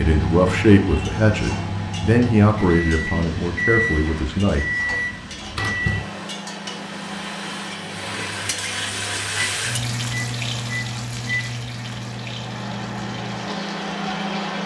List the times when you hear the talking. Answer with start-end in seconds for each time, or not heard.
0.0-4.7.